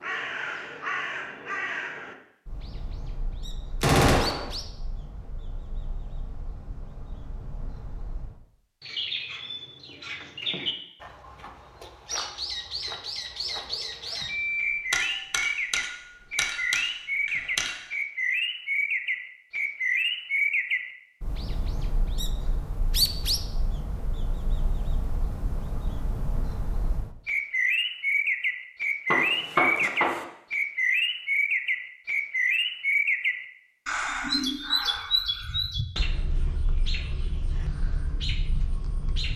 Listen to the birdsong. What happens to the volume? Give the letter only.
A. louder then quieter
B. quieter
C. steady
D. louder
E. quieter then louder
D.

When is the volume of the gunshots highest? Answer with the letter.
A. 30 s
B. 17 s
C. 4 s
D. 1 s
C.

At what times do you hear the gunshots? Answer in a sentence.
The gunshots can be heard from 3.8 to 4.5 s, from 14.2 to 17.8 s and from 29.1 to 30.2 s.